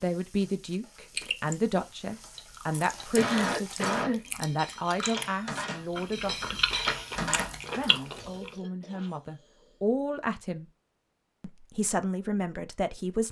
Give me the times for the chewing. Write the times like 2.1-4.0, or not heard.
1.1-8.6.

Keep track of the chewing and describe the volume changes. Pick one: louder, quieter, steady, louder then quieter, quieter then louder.
louder.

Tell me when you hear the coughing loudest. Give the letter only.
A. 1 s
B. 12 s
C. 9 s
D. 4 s
D.